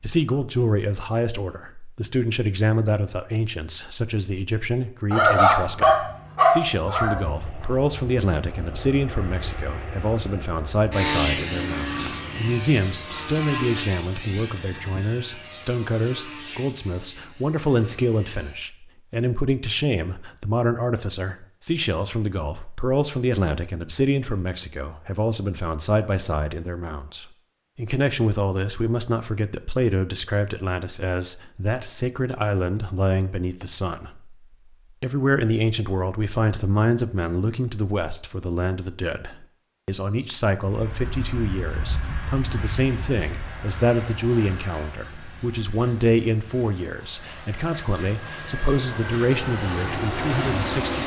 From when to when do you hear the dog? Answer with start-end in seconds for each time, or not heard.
5.1-7.2.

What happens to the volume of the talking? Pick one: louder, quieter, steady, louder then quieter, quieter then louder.
steady.